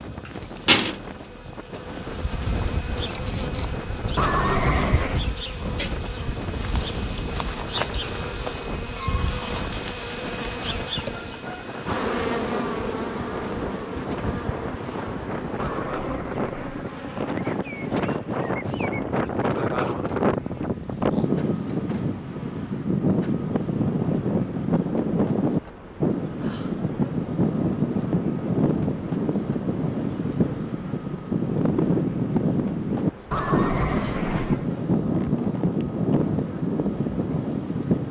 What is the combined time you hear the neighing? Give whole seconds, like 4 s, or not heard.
4 s.